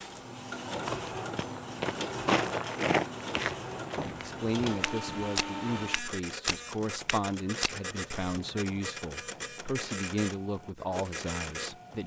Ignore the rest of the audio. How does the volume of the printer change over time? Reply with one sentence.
The volume of the printer stays about the same.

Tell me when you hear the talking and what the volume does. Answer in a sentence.
The talking can be heard from 4.2 to 12.0 s, at a steady volume.